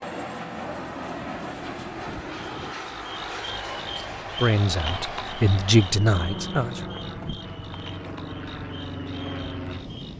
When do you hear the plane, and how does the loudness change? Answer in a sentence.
The plane can be heard from 0.0 to 10.1 s, at a steady volume.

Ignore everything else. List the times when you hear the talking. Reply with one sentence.
The talking can be heard from 4.3 to 6.8 s.